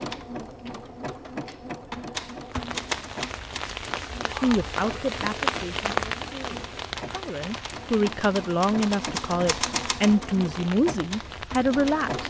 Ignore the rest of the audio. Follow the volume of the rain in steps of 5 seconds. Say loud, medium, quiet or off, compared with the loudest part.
loud, loud, medium.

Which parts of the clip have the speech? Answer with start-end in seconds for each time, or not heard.
4.3-12.2.